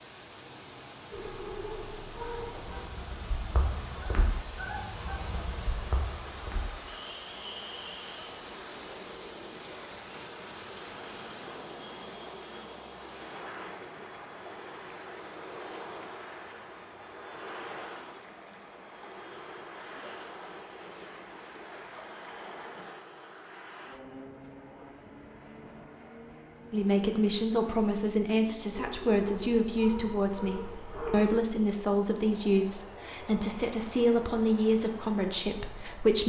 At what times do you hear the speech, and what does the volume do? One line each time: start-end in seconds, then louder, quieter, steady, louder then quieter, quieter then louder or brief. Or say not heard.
26.7-36.2 steady.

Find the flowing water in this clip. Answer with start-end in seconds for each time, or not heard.
0.0-22.9.